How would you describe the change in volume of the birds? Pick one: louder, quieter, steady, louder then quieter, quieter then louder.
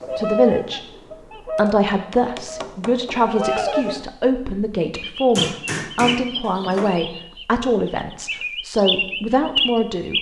quieter then louder.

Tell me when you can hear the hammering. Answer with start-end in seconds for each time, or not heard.
1.6-3.2, 5.3-7.0.